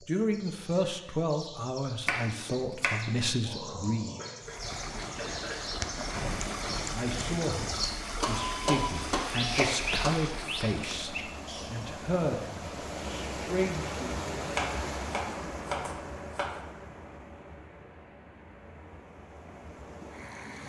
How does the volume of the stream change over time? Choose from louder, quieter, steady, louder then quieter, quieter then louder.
quieter.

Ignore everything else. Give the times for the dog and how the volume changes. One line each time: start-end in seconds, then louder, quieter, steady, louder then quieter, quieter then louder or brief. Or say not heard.
not heard.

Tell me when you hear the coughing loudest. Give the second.
5 s.